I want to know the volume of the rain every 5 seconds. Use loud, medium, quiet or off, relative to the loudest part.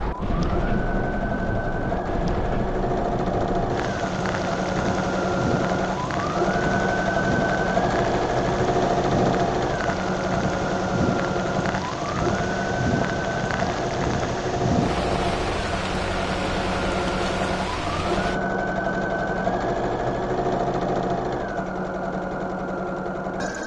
loud, loud, loud, loud, off.